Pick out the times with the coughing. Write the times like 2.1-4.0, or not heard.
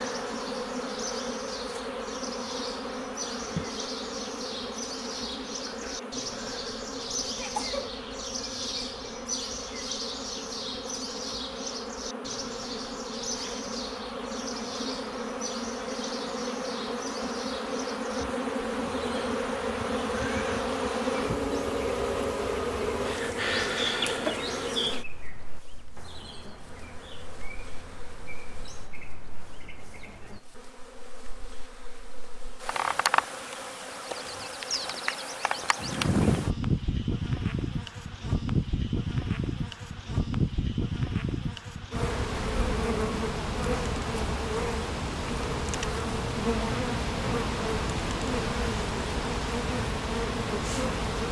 6.9-8.0.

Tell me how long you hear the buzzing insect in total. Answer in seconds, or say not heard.
51 s.